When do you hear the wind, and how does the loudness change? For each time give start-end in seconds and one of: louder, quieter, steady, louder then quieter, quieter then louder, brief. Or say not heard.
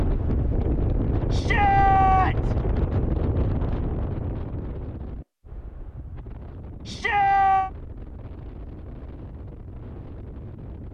0.0-10.8 quieter.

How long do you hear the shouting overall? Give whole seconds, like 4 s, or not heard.
2 s.